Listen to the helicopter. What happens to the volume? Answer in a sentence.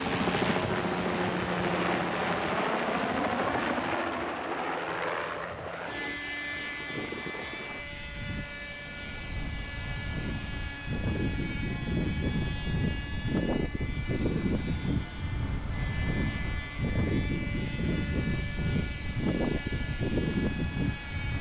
The loudness of the helicopter goes down.